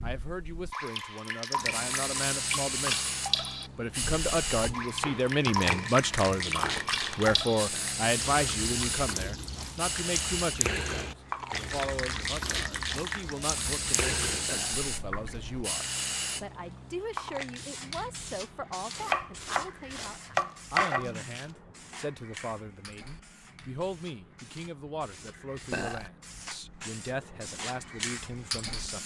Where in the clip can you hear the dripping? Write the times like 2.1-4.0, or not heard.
0.0-15.7.